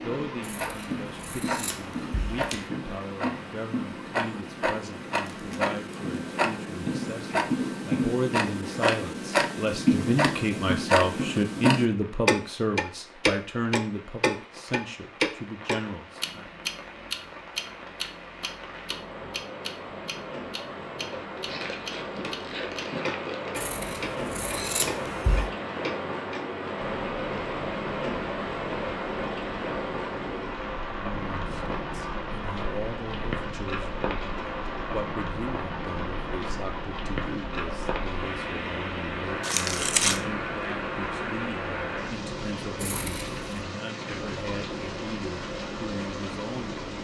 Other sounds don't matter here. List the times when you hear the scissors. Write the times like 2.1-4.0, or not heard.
0.4-2.6, 23.6-25.5, 42.8-43.6.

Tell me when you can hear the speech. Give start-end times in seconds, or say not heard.
0.0-16.5, 30.8-46.8.